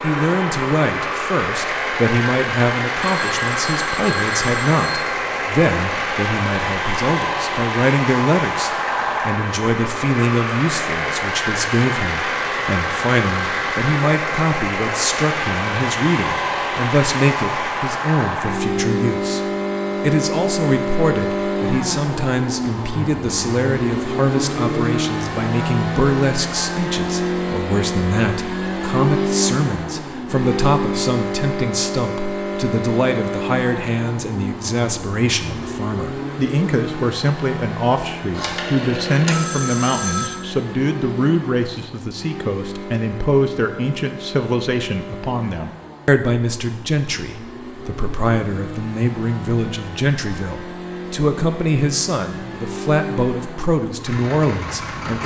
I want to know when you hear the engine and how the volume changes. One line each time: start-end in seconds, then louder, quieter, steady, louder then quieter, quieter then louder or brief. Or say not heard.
0.0-55.2 quieter.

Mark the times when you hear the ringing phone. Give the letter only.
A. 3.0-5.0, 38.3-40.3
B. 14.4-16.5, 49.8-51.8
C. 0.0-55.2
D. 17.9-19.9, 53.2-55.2
A.